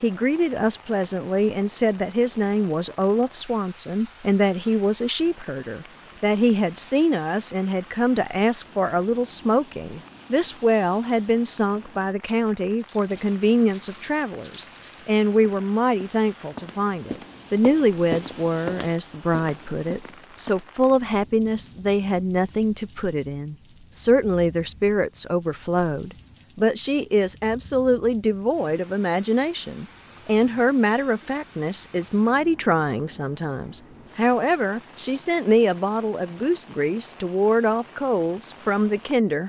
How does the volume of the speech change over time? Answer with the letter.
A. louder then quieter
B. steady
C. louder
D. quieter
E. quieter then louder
B.